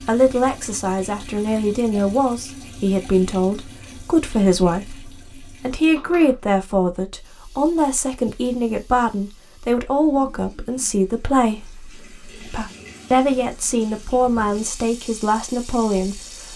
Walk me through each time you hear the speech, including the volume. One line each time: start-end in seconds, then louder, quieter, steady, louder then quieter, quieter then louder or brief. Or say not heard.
0.1-16.5 steady.